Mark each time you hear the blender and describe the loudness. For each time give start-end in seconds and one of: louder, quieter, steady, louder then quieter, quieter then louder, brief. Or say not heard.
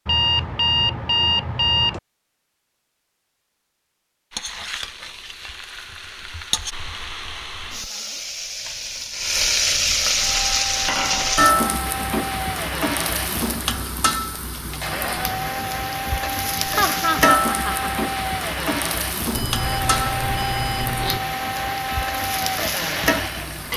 10.1-23.7 steady.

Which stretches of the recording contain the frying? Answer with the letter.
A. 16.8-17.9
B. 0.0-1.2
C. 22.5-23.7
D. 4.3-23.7
D.